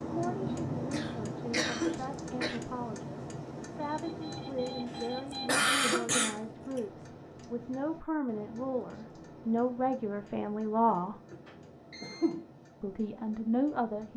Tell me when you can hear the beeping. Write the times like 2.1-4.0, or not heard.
3.8-5.5, 11.4-12.3.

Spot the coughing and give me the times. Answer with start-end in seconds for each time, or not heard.
0.5-2.6, 5.3-6.8, 10.8-12.4.